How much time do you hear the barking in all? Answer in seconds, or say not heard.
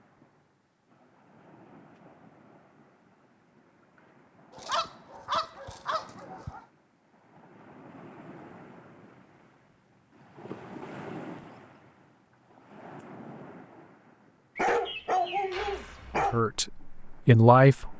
4 s.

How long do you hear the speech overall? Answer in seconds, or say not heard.
2 s.